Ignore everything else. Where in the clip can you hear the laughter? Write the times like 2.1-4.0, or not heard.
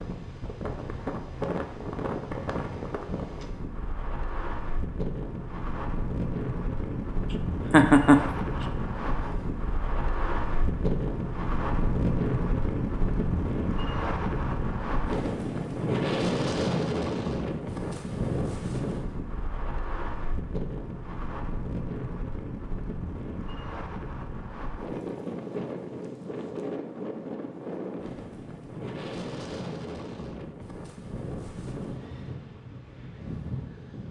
7.7-8.7.